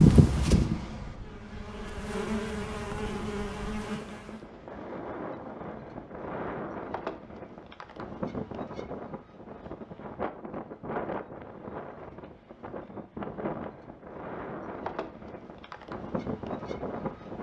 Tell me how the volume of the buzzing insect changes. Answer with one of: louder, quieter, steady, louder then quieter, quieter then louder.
quieter then louder.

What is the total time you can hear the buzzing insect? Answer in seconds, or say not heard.
4 s.